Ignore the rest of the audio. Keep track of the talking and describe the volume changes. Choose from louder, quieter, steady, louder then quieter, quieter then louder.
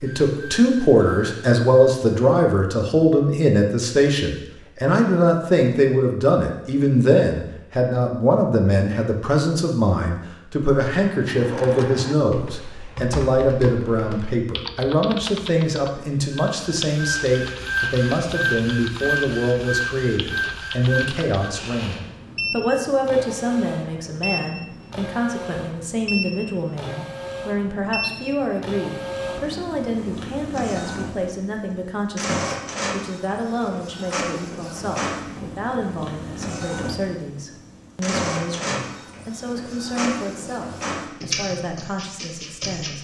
quieter.